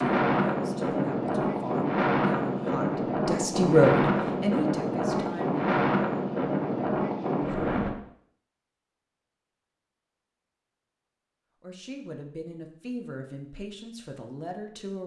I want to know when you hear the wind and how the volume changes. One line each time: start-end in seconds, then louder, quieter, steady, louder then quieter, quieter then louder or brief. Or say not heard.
0.0-7.9 steady.